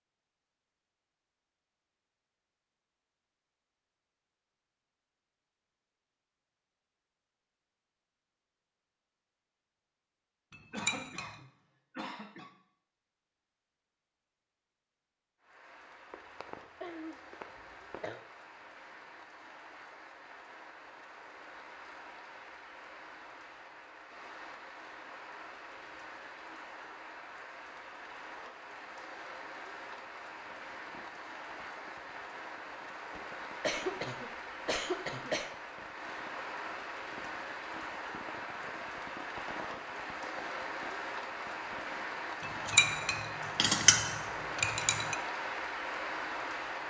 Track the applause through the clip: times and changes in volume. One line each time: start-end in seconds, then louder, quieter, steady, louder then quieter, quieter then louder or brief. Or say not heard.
15.4-46.8 louder.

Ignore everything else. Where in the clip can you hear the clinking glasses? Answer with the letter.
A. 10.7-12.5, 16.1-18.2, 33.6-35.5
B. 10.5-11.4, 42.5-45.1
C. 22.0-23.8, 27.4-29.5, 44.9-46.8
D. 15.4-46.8
B.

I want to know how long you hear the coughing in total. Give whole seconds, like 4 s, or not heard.
6 s.